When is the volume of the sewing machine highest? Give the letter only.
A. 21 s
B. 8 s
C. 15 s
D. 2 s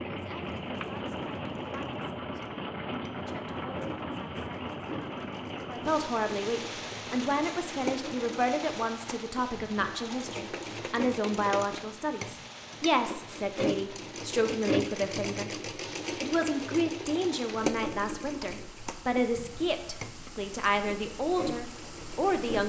C.